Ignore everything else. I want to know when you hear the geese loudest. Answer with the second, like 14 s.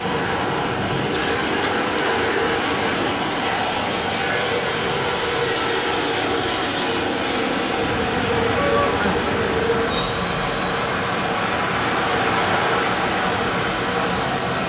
9 s.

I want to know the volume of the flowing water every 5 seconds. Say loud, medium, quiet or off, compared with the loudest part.
medium, medium, loud.